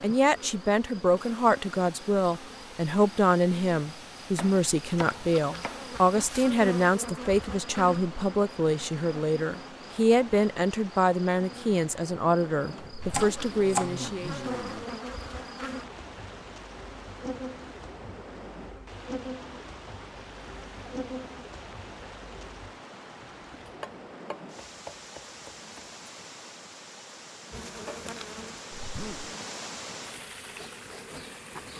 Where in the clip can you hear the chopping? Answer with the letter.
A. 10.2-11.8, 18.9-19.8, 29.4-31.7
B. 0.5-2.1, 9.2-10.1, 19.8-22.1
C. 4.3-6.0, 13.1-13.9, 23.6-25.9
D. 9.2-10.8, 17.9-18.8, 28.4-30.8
C.